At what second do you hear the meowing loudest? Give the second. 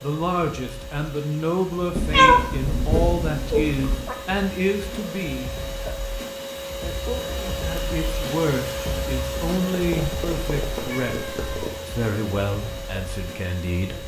2 s.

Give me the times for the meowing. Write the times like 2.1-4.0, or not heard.
1.9-4.2, 9.7-11.8.